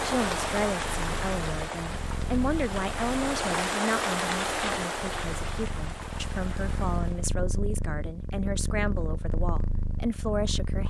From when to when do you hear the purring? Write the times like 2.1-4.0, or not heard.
0.0-10.8.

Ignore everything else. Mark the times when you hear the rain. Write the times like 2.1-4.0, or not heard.
0.0-7.3.